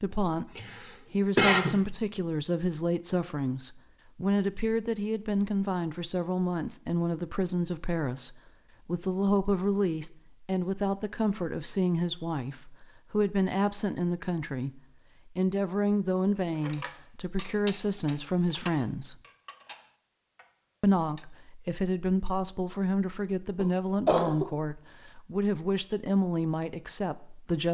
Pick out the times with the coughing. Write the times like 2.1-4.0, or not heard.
0.1-1.8, 23.6-24.4.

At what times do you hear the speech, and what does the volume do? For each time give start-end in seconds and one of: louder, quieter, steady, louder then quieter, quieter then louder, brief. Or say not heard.
0.0-19.1 steady
20.8-27.6 steady.